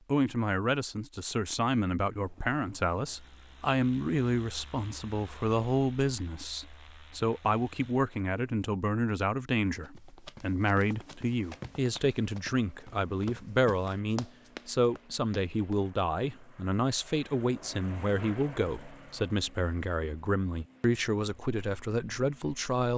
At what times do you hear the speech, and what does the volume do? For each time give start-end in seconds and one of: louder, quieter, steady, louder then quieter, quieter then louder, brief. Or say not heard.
0.1-22.9 steady.